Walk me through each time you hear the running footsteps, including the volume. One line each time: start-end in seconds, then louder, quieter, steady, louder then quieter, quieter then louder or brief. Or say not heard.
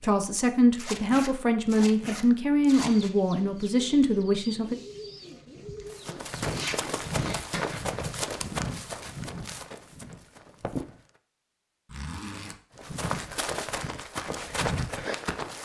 5.8-11.1 quieter
12.8-15.5 brief.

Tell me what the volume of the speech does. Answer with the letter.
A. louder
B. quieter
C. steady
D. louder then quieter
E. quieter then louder
C.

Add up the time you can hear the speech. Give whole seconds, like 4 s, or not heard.
5 s.